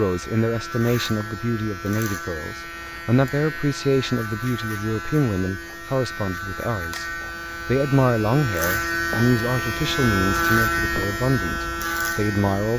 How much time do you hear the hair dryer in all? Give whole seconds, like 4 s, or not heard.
not heard.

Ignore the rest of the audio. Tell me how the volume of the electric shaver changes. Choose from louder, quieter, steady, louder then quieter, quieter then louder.
louder.